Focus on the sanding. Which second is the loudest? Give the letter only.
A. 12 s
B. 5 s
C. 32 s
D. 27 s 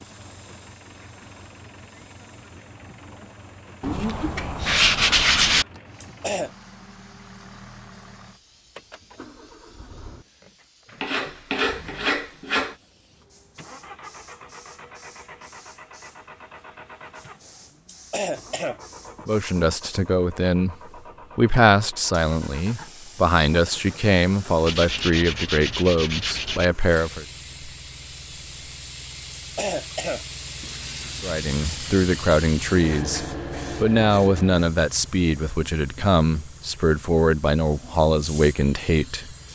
B.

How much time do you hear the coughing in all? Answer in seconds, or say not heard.
3 s.